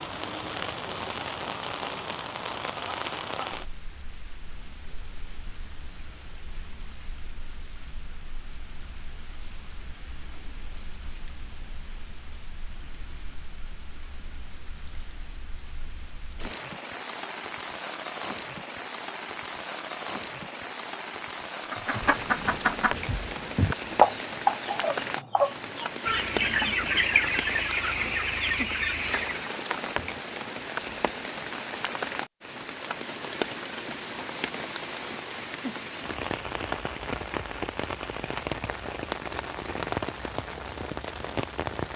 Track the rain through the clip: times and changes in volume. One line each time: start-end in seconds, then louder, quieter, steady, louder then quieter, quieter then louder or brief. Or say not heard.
0.0-41.9 quieter then louder.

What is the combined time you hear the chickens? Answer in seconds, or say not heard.
8 s.